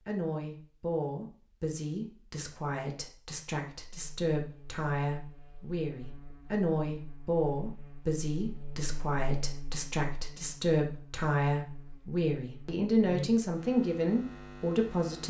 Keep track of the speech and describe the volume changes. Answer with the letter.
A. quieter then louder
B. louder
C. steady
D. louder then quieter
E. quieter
B.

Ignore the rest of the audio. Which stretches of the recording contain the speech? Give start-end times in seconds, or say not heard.
0.1-15.2.